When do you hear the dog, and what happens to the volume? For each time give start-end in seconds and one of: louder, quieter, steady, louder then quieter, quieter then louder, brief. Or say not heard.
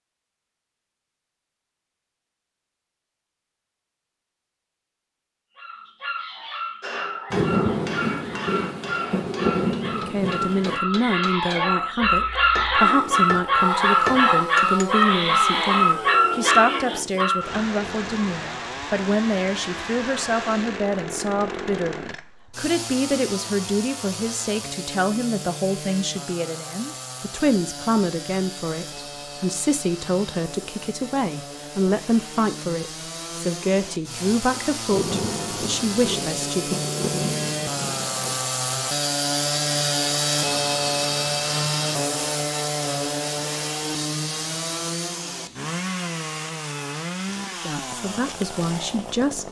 5.5-17.6 louder.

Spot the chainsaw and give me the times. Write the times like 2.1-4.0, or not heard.
12.8-49.4.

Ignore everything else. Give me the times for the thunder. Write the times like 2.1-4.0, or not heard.
7.3-10.8, 34.9-38.4.